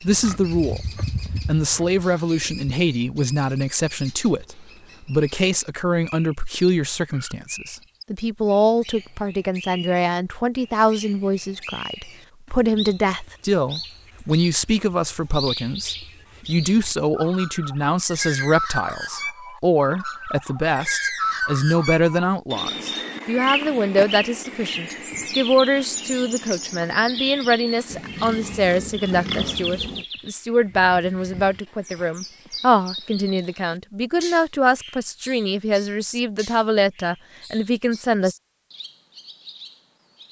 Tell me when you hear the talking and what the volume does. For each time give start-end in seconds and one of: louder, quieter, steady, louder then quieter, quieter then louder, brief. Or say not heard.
0.0-0.8 brief
1.4-38.4 steady.